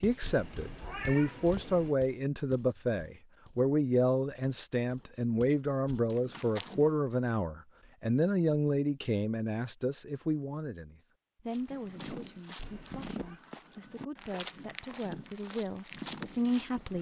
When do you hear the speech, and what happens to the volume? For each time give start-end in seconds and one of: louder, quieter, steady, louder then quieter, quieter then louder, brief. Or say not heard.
0.0-16.9 quieter.